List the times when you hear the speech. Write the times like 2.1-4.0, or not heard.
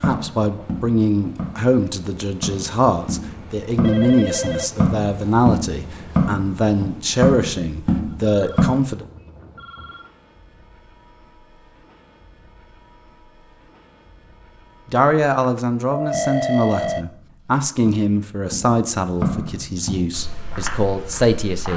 0.0-9.1, 14.9-21.7.